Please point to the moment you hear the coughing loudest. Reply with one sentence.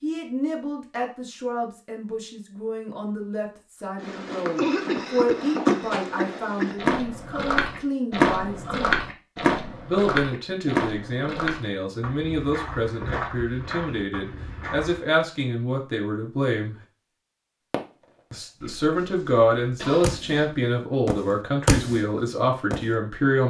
The loudest moment of the coughing is at 5 seconds.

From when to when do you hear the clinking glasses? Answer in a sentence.
The clinking glasses can't be heard in this clip.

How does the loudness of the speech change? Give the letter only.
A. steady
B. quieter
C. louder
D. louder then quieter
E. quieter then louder
C.